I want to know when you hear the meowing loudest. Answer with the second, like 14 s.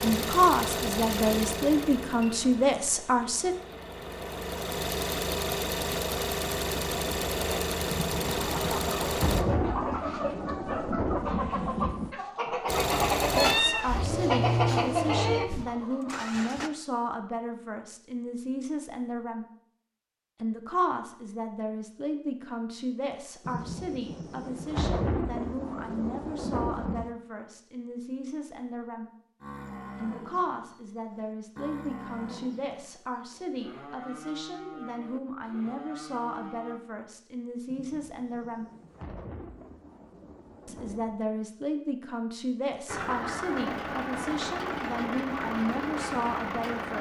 14 s.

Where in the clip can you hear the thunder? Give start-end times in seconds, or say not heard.
7.9-12.2, 23.4-27.1, 37.6-41.2.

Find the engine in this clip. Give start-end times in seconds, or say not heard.
0.0-9.4, 12.7-16.7, 42.9-46.9.